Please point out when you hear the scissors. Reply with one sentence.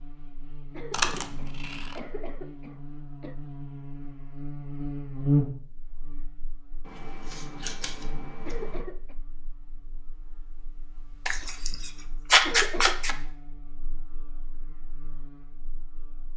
You can hear the scissors from 0.9 to 1.9 s, from 6.8 to 8.8 s and from 11.2 to 13.2 s.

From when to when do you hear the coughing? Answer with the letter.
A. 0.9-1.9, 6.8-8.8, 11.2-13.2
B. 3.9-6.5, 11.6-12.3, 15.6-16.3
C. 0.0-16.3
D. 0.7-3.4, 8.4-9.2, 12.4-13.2
D.